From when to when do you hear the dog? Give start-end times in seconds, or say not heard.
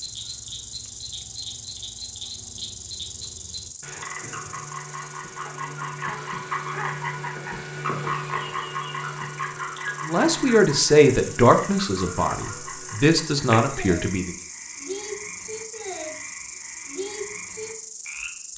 5.5-7.1.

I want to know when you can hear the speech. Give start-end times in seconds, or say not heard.
10.1-14.3.